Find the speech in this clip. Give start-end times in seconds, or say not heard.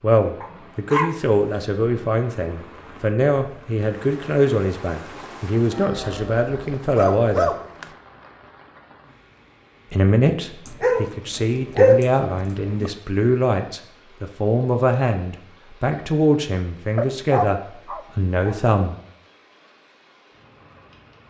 0.0-7.5, 9.9-18.9.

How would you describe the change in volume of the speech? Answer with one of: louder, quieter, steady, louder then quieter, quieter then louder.
steady.